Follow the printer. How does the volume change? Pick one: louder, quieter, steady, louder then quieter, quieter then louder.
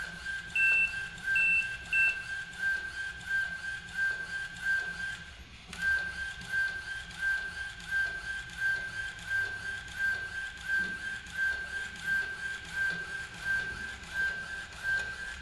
steady.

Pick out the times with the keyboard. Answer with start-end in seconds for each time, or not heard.
not heard.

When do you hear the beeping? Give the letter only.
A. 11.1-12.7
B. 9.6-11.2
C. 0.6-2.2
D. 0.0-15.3
C.